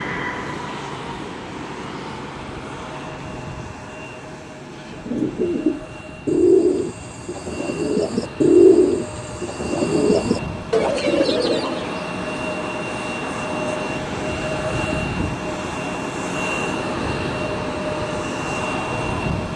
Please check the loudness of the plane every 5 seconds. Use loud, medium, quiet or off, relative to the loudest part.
medium, medium, loud, loud.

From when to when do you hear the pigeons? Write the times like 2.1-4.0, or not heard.
4.5-12.1.